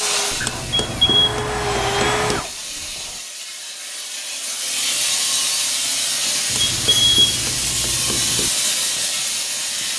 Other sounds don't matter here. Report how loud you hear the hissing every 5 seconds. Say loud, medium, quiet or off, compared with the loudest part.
medium, loud.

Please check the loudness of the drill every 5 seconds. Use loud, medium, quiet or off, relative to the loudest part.
loud, off.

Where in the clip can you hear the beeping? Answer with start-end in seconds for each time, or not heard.
0.7-1.4, 6.5-7.3.